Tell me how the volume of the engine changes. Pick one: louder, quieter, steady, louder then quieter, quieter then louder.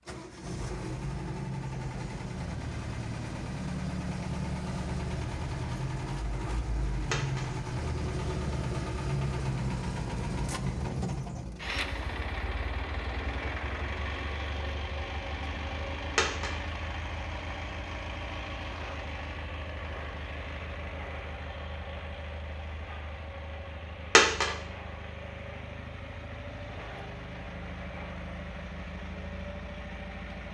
quieter.